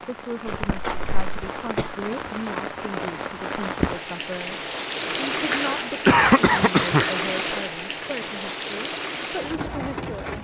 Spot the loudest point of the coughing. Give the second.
6 s.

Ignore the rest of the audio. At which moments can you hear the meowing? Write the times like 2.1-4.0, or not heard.
not heard.